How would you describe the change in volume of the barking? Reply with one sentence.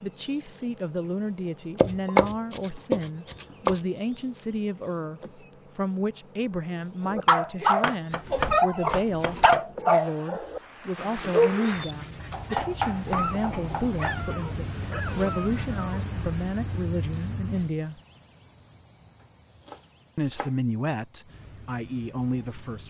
The volume of the barking goes down.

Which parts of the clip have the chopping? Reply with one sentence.
You can hear the chopping from 1.8 to 3.8 s, from 7.8 to 9.7 s, from 12.3 to 14.2 s and from 19.6 to 20.6 s.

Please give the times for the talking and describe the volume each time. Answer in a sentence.
You can hear the talking from 0.0 to 18.0 s, at a steady volume; and briefly from 20.1 to 22.8 s.